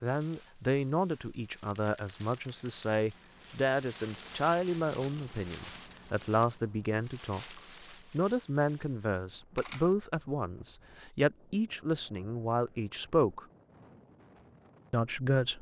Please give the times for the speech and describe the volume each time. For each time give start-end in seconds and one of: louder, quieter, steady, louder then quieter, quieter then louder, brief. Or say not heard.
0.0-13.4 steady
14.9-15.5 brief.